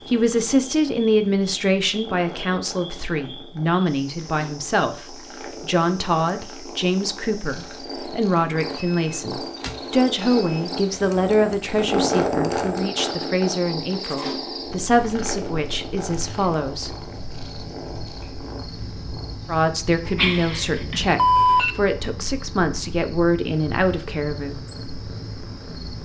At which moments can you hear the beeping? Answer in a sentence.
The beeping can be heard from 8.8 to 10.7 s and from 20.1 to 21.8 s.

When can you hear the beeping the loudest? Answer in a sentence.
The loudest moment of the beeping is at 21 seconds.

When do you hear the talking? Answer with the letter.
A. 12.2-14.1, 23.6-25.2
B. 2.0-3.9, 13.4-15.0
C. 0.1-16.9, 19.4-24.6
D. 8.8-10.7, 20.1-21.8
C.